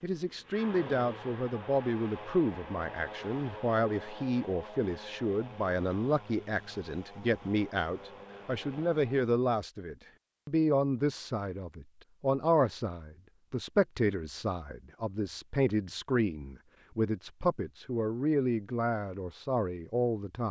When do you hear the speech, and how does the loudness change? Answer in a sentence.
The speech can be heard from 0.0 to 20.4 s, at a steady volume.